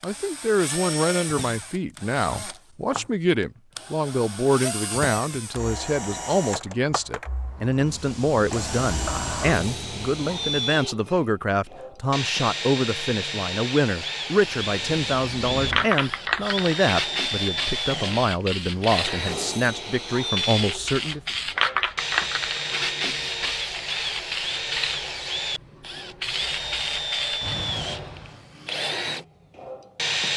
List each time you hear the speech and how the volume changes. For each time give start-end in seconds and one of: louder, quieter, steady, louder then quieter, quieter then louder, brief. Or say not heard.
0.0-21.2 steady.